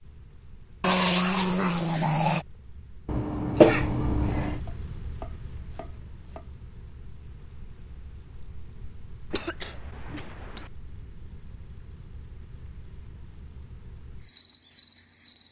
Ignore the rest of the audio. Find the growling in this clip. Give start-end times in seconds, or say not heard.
0.8-2.5.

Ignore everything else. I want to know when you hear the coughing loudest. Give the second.
4 s.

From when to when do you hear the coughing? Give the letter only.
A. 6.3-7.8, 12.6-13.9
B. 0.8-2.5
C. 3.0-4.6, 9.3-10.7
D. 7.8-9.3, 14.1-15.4
C.